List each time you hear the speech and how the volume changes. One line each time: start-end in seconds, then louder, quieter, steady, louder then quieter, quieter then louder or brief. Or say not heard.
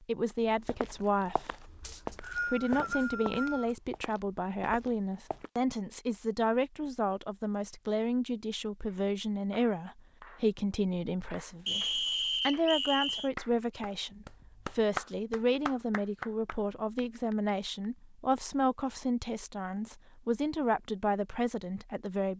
0.0-22.3 steady.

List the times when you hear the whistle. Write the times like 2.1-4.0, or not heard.
1.8-3.8, 11.7-13.3.